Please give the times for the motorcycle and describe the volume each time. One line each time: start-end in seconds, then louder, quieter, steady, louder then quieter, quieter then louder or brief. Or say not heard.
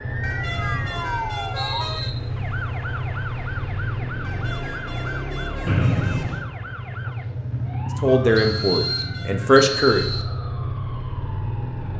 0.0-11.9 steady.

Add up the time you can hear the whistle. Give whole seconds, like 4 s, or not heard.
4 s.